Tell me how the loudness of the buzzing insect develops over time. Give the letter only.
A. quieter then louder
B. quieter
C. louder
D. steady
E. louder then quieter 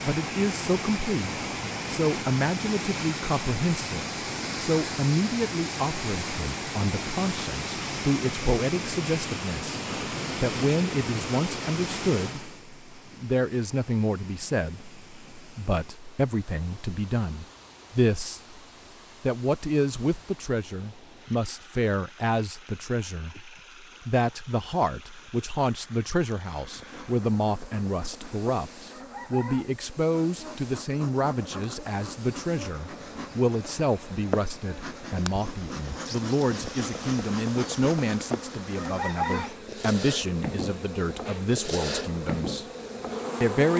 C.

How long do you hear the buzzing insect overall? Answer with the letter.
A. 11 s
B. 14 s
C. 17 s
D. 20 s
C.